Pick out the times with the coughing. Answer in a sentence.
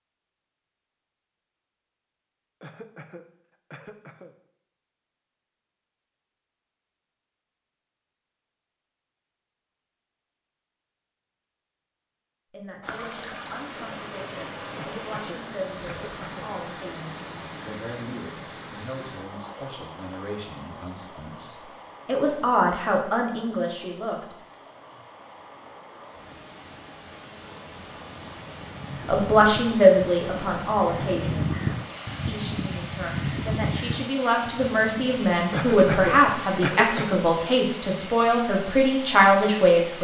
You can hear the coughing from 2.6 to 4.3 s, from 14.8 to 16.5 s and from 35.5 to 37.2 s.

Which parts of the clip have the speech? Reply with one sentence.
The speech can be heard from 12.5 to 24.4 s, from 29.1 to 31.6 s and from 32.2 to 39.9 s.